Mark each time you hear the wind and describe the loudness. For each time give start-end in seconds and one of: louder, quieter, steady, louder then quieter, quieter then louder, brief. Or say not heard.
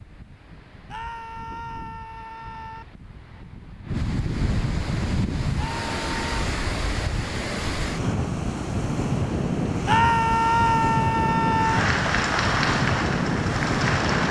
0.0-14.2 louder.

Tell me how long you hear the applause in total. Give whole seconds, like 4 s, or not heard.
3 s.